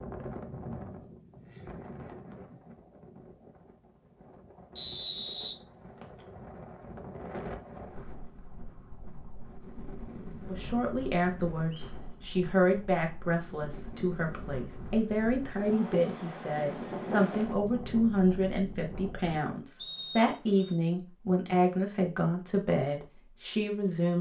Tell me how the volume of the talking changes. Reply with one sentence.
The volume of the talking stays about the same.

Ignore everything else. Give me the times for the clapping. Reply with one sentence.
The clapping can't be heard in this clip.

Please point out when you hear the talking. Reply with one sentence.
You can hear the talking from 10.4 to 24.1 s.